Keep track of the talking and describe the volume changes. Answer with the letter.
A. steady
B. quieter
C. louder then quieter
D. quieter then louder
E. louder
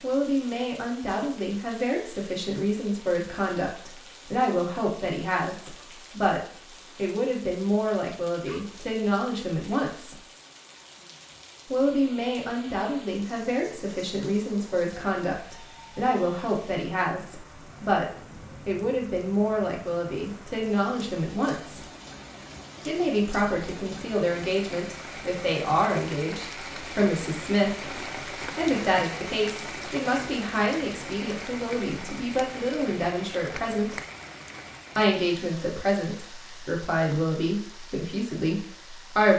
A.